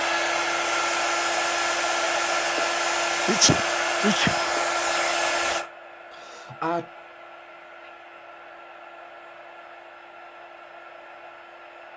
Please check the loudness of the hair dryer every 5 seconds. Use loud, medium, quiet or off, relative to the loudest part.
loud, medium, quiet.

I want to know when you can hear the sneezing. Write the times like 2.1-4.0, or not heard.
3.2-4.3, 6.1-6.9.